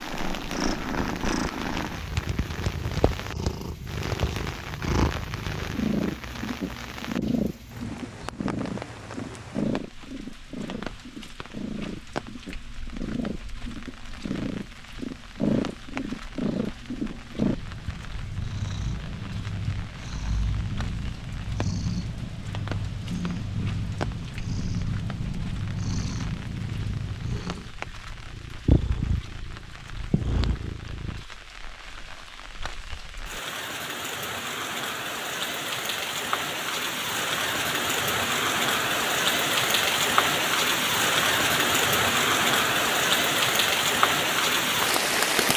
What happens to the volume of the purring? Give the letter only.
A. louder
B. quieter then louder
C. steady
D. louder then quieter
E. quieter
C.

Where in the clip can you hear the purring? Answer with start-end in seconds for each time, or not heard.
0.0-31.2.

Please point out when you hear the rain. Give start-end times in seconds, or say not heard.
0.0-45.5.